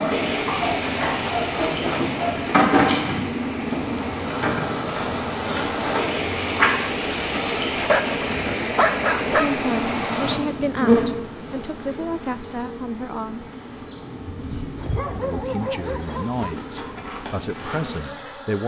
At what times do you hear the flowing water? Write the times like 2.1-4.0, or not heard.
0.0-10.4.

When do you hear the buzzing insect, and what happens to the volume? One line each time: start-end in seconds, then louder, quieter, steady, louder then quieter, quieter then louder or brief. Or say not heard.
0.0-18.6 quieter.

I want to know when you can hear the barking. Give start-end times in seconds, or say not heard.
0.5-2.5, 7.6-9.7, 14.8-16.6.